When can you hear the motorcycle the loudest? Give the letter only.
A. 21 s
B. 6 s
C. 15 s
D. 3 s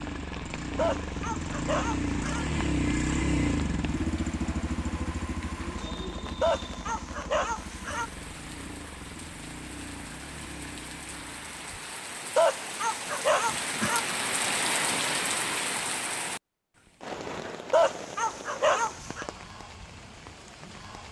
D.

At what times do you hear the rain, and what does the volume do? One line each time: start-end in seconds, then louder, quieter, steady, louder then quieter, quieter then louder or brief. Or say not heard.
0.0-21.0 louder then quieter.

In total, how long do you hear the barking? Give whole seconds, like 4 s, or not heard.
7 s.